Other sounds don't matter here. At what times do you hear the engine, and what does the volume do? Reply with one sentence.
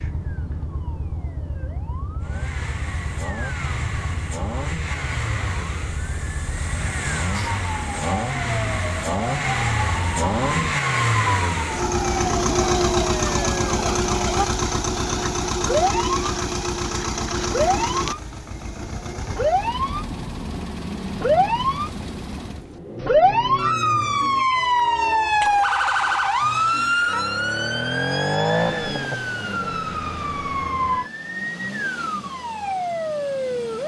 You can hear the engine from 2.2 to 33.8 s, getting louder then quieter.